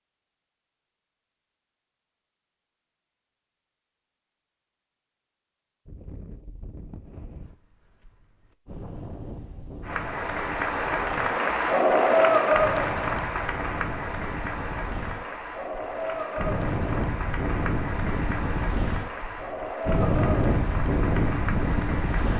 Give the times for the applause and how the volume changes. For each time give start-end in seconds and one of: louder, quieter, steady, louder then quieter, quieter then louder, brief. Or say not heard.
9.8-22.3 quieter.